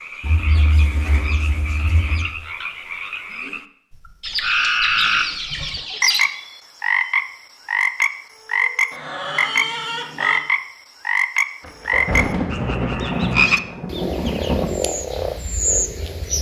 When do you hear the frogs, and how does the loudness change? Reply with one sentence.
The frogs can be heard from 0.0 to 16.3 s, getting louder.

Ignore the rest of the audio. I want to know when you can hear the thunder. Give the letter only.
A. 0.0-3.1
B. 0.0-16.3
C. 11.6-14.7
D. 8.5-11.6
C.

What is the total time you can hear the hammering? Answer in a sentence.
The hammering can't be heard in this clip.